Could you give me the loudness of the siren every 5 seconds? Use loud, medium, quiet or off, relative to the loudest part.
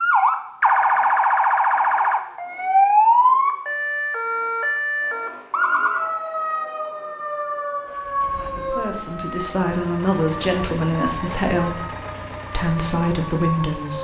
loud, medium, quiet.